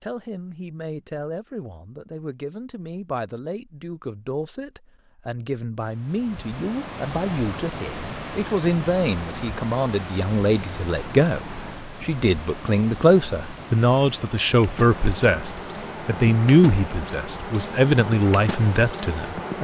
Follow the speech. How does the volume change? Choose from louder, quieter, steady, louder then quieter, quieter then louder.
louder.